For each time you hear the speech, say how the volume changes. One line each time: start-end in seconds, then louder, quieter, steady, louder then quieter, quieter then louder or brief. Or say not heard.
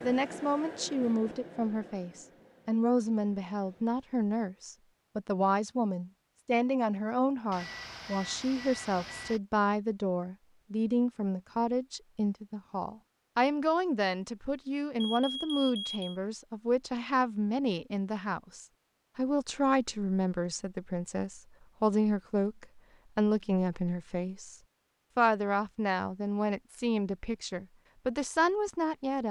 0.0-29.2 steady.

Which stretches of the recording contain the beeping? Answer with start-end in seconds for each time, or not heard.
7.5-9.4, 15.0-16.1.